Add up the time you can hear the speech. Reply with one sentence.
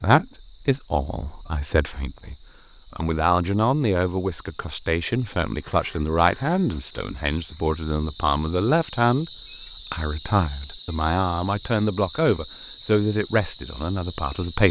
You can hear the speech for 14 seconds altogether.